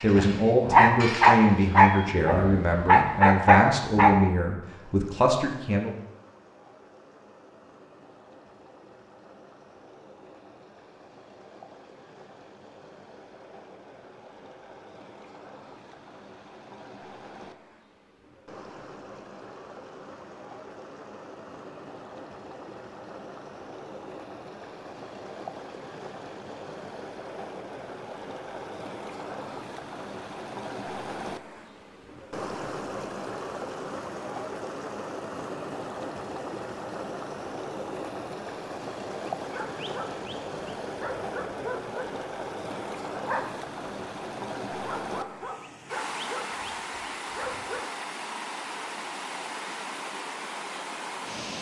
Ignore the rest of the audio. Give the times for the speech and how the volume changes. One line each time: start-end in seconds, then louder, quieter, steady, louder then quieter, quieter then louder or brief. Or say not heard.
0.0-6.0 steady.